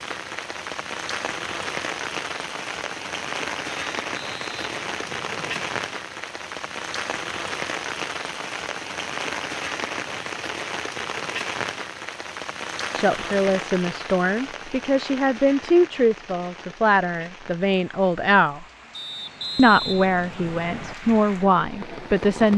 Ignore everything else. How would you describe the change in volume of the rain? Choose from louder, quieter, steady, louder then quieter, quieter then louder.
quieter.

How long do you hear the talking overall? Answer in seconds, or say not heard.
9 s.